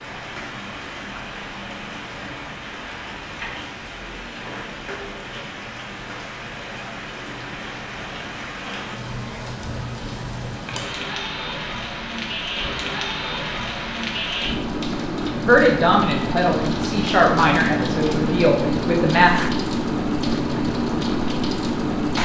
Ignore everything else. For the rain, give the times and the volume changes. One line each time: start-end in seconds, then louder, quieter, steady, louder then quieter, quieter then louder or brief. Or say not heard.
0.0-22.1 louder.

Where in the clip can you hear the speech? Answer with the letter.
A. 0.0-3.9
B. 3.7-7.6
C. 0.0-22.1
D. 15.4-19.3
D.